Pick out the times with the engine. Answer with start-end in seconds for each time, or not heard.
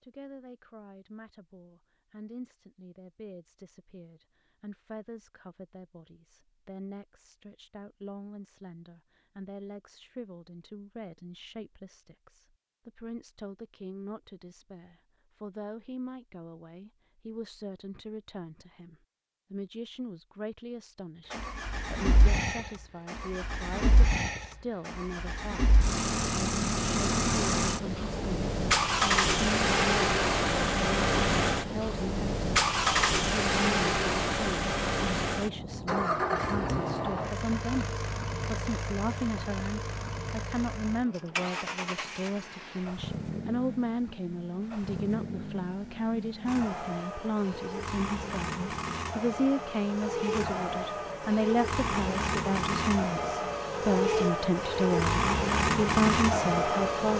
21.3-57.1.